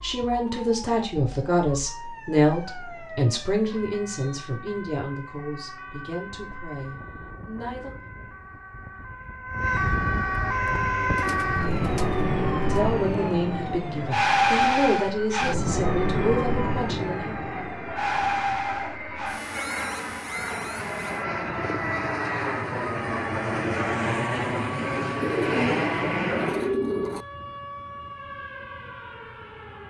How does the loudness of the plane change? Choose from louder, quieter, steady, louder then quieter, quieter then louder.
louder.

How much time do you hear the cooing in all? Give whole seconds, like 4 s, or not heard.
4 s.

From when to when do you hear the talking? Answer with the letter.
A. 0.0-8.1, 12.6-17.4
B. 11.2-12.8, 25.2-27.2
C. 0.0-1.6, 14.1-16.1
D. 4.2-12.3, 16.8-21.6
A.